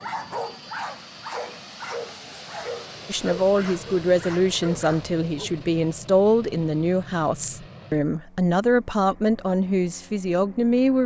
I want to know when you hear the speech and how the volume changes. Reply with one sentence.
The speech can be heard from 3.0 to 11.0 s, at a steady volume.